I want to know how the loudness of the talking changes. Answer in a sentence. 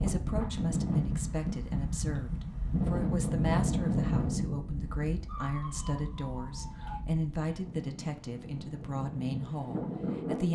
The loudness of the talking stays about the same.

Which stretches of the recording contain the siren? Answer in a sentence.
The siren can be heard from 5.2 to 7.0 s.